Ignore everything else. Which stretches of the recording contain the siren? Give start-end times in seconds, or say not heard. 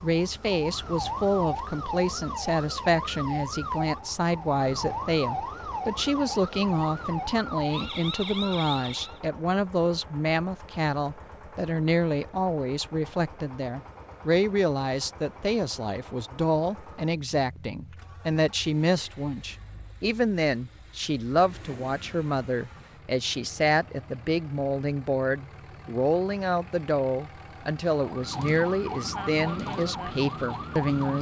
0.0-9.2, 27.9-31.1.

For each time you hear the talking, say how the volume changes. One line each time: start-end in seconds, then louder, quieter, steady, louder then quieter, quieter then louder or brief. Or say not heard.
0.0-31.1 steady.